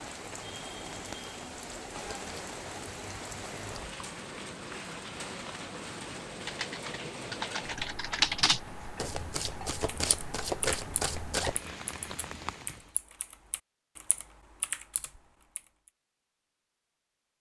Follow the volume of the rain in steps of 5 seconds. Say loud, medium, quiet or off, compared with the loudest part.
loud, loud, loud, off.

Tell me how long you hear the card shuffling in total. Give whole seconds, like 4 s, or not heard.
4 s.